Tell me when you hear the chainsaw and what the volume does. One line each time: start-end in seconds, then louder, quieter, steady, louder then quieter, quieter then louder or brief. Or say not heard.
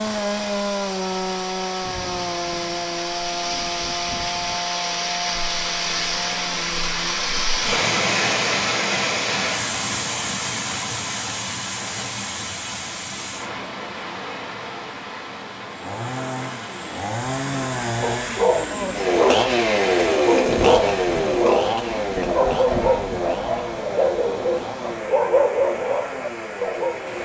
0.0-7.3 quieter
15.7-27.1 louder then quieter.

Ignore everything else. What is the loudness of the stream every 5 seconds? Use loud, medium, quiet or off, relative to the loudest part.
medium, loud, medium, quiet, quiet, quiet.